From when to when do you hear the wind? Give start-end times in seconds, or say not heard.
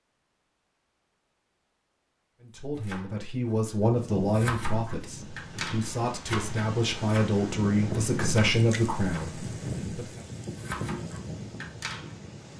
4.0-12.5.